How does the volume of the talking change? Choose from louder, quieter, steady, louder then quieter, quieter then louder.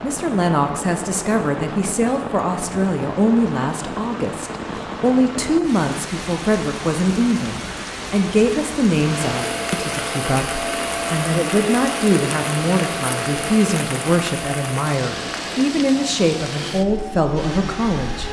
steady.